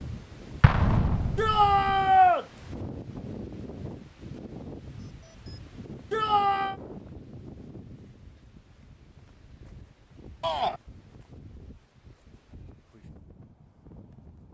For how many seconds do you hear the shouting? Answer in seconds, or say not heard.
2 s.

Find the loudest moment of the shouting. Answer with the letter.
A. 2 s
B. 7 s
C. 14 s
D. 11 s
A.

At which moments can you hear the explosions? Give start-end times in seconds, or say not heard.
0.6-1.9.